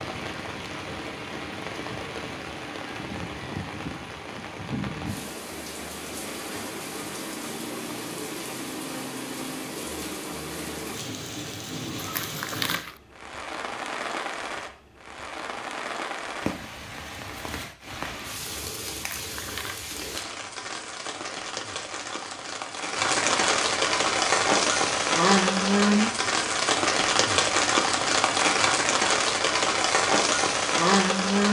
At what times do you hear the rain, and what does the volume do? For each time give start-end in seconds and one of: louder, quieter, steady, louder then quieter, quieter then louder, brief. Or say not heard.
0.0-31.4 louder.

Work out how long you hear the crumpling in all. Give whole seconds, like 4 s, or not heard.
2 s.